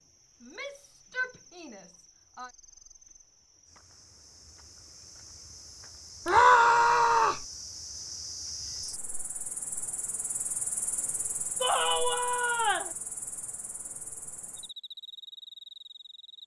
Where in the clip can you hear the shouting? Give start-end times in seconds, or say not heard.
0.4-2.5, 6.2-7.5, 11.6-12.9.